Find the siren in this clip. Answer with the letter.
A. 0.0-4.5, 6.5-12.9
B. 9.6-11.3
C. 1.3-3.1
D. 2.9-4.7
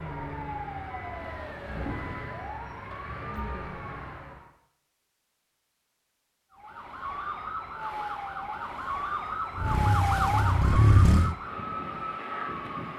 A.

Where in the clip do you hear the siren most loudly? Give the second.
10 s.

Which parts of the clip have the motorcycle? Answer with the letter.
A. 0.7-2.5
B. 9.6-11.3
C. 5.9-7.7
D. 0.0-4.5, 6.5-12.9
B.